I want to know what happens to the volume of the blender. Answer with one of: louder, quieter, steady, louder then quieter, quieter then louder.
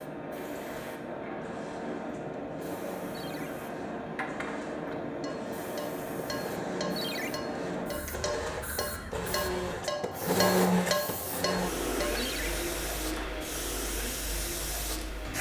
louder then quieter.